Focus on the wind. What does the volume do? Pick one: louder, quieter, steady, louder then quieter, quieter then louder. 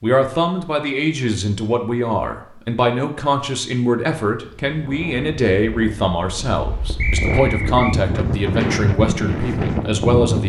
louder.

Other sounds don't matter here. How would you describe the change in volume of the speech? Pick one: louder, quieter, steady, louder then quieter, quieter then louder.
steady.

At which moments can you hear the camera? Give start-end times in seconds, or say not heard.
not heard.